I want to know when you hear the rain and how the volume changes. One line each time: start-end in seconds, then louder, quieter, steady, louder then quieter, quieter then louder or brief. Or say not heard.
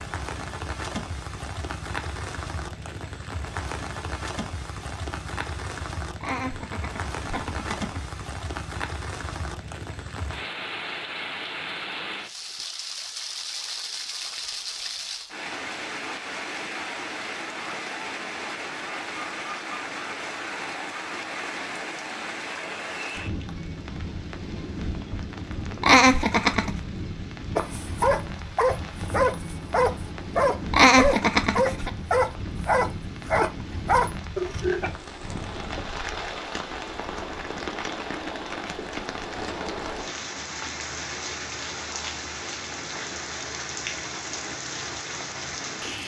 0.0-46.0 steady.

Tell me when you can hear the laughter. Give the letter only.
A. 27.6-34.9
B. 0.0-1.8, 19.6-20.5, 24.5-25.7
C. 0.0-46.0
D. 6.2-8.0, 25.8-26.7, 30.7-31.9
D.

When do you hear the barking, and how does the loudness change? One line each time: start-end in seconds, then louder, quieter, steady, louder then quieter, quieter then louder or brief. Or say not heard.
27.6-34.9 steady.